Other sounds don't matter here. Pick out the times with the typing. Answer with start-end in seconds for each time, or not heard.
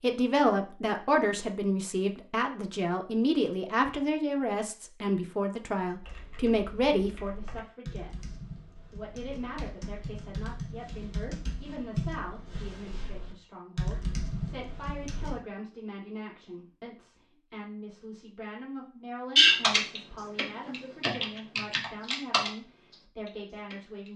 6.0-15.3, 19.4-24.1.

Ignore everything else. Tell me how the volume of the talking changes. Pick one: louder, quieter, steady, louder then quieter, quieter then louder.
quieter.